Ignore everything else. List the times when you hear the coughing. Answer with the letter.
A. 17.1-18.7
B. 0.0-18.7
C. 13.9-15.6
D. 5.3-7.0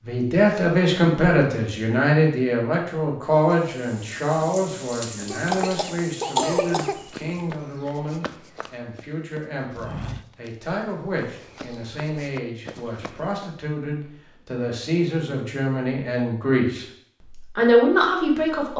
D.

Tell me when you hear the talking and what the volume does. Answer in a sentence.
The talking can be heard from 0.0 to 18.7 s, getting quieter then louder.